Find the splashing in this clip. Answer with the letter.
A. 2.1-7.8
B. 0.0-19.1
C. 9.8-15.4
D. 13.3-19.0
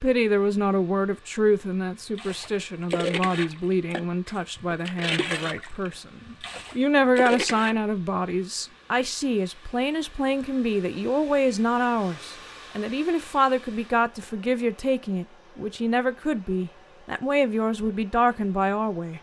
A.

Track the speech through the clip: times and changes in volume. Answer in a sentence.
You can hear the speech from 0.0 to 19.1 s, at a steady volume.